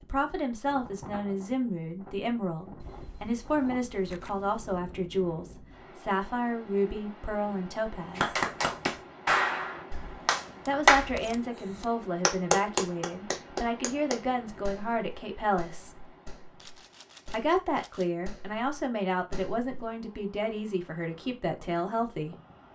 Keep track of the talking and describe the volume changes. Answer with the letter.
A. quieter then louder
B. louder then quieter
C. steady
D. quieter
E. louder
C.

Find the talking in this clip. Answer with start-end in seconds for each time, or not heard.
0.0-8.3, 10.7-16.1, 17.3-22.4.